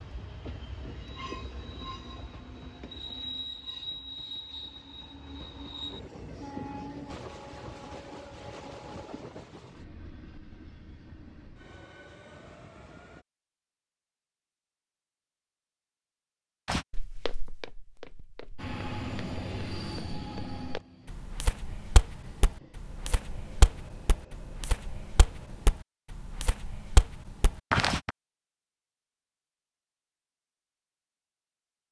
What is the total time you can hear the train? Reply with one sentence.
You can hear the train for 20 seconds altogether.